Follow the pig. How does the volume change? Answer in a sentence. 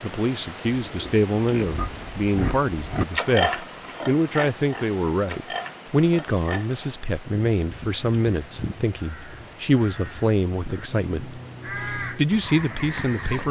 The volume of the pig goes up, then down.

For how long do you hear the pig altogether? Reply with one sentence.
You can hear the pig for 6 seconds altogether.